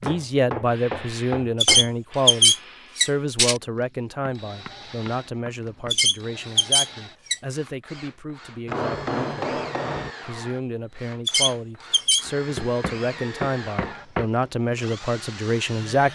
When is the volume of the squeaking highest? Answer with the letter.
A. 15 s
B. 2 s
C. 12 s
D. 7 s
B.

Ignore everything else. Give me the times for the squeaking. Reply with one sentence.
The squeaking can be heard from 1.6 to 3.6 s, from 5.9 to 7.4 s and from 11.2 to 12.2 s.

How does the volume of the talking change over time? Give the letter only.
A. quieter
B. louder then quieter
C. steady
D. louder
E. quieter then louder
E.